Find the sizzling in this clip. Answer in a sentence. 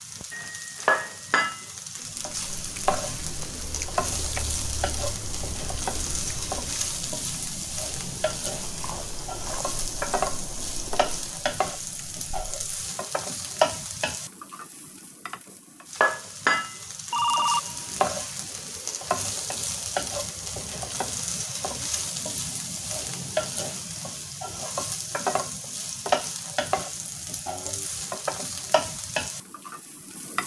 The sizzling can be heard from 0.0 to 30.4 s.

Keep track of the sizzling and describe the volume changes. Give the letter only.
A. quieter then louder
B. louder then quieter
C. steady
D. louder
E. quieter
C.